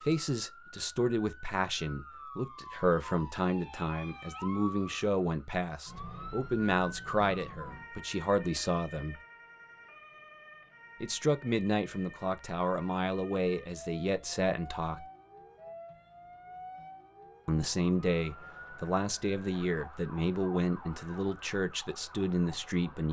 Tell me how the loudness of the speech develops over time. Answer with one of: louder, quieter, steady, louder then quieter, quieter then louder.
steady.